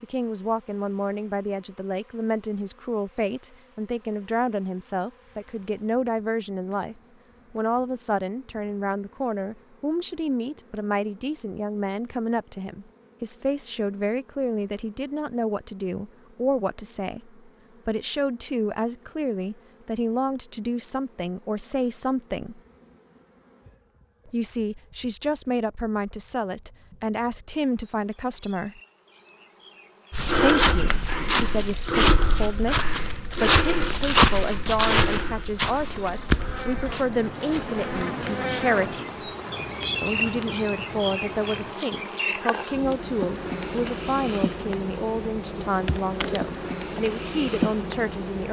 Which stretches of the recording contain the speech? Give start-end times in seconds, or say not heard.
0.0-22.6, 24.2-28.8, 30.4-39.3, 40.0-48.4.